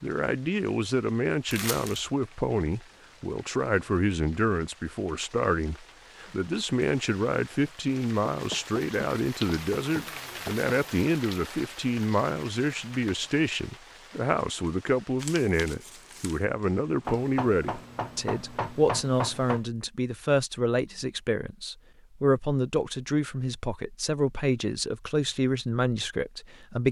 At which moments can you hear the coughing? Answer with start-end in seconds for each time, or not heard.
not heard.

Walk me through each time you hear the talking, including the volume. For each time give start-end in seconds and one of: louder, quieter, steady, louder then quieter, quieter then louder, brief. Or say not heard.
0.0-26.8 steady.